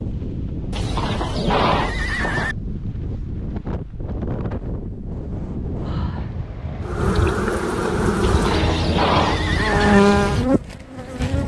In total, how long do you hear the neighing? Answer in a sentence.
You can hear the neighing for 4 seconds altogether.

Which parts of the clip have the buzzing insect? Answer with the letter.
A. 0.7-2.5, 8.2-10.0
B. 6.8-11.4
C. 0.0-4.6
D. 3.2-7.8
B.